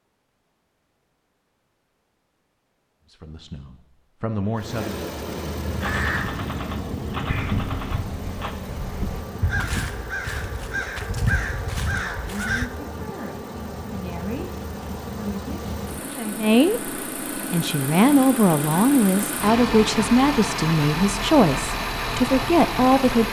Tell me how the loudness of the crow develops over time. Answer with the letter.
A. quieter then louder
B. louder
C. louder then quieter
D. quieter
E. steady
B.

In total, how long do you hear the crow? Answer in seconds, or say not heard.
7 s.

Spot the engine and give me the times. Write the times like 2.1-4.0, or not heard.
4.5-23.2.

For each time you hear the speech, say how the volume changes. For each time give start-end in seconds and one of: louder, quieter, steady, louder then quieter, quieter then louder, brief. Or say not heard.
3.1-5.1 brief
11.9-23.2 louder.